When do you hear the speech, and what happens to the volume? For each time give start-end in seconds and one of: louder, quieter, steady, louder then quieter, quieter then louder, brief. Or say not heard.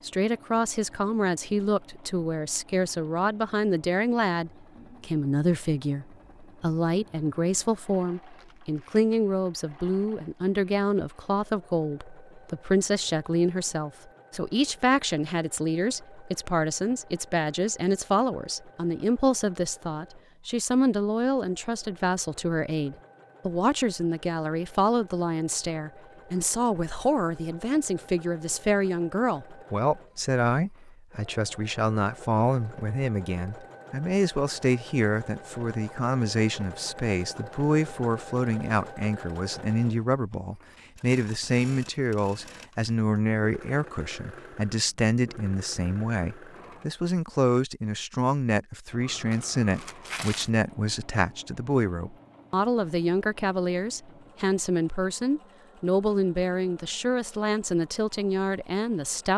0.1-59.3 steady.